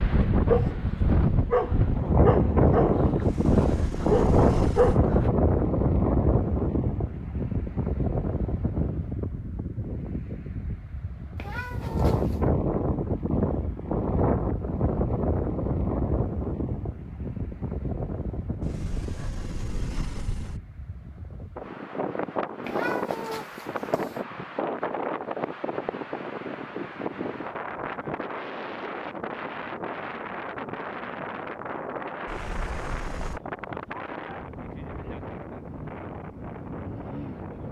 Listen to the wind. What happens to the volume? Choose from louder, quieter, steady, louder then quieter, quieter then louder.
quieter.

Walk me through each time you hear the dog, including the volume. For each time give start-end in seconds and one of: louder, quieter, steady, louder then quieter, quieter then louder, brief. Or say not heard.
0.0-5.3 quieter then louder.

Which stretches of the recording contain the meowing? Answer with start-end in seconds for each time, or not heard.
11.3-12.4, 22.6-24.2.